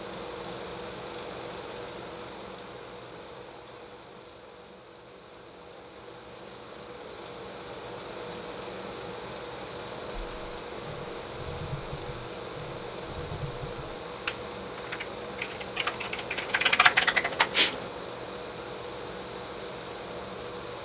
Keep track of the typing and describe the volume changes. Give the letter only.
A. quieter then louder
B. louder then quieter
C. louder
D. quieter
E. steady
C.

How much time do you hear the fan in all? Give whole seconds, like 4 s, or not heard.
21 s.